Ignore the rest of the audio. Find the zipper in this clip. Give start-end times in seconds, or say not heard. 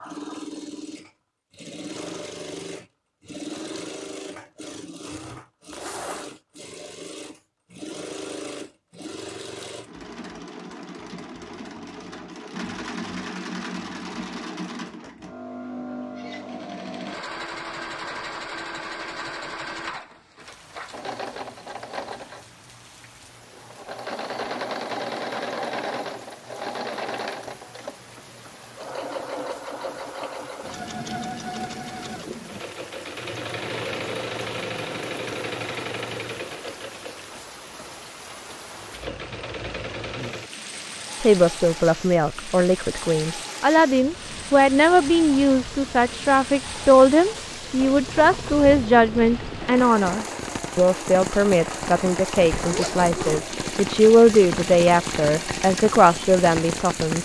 5.7-6.3, 52.5-53.5.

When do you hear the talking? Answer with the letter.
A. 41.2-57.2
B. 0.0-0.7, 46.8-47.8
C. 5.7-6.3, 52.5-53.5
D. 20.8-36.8
A.